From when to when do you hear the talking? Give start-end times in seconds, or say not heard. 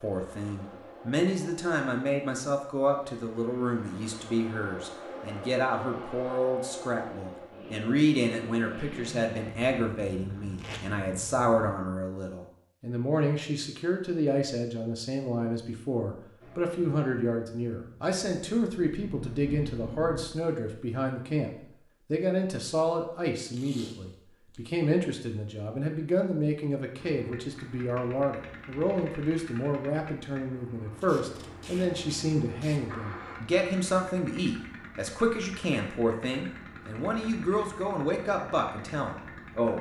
0.0-39.7.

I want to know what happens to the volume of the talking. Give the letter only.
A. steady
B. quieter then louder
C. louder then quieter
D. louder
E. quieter
A.